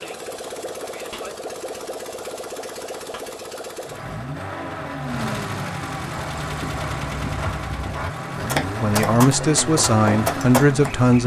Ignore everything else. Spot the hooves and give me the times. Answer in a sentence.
The hooves can be heard from 6.1 to 11.2 s.